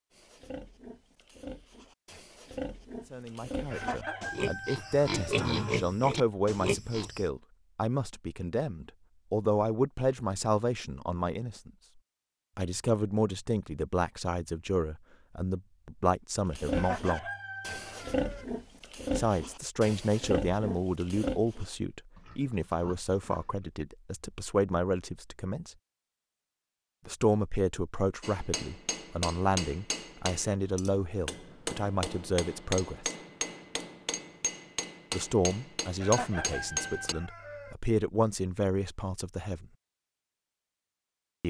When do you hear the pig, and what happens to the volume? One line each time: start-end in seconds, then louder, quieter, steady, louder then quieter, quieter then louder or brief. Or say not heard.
0.1-7.2 louder
16.5-23.5 louder then quieter.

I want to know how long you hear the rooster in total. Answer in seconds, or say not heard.
5 s.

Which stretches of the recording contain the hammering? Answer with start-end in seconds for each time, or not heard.
28.2-37.1.